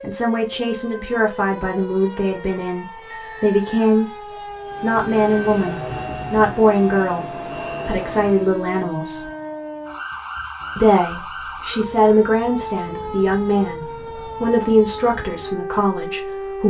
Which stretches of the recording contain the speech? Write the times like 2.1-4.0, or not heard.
0.0-9.2, 10.8-16.6.